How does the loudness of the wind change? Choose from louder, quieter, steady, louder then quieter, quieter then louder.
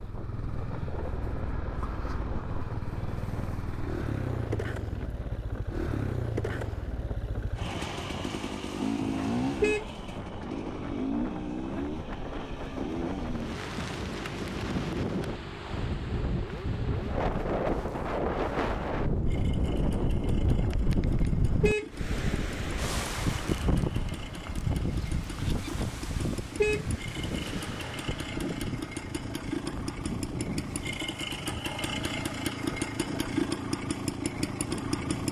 louder then quieter.